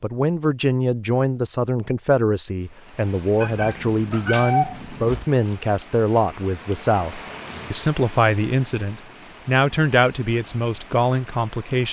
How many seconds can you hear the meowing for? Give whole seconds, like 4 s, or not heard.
2 s.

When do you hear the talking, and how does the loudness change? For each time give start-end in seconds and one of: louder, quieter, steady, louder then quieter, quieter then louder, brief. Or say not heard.
0.0-11.8 steady.